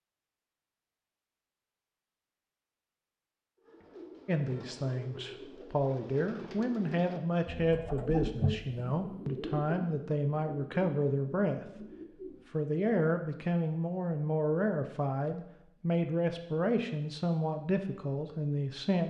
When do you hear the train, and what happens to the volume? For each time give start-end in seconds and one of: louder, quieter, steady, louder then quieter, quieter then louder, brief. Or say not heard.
not heard.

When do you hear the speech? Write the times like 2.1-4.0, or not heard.
4.2-11.8, 12.5-19.0.